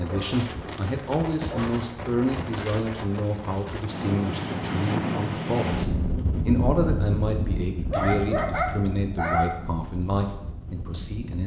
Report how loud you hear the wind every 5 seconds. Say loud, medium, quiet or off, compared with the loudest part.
loud, loud, medium.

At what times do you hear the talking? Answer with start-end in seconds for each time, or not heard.
0.0-11.4.